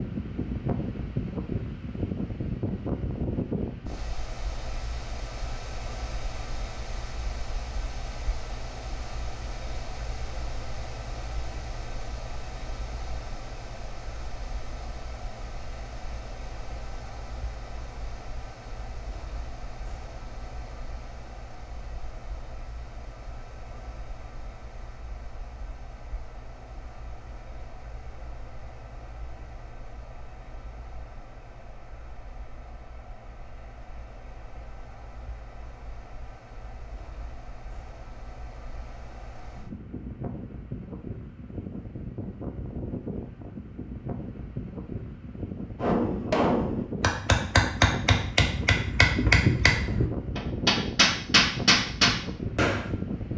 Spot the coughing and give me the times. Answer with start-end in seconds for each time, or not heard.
not heard.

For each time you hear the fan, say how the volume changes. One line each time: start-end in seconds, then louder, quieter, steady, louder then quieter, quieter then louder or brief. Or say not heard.
0.0-53.3 quieter then louder.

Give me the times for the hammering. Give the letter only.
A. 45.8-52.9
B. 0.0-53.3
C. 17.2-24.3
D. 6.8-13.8
A.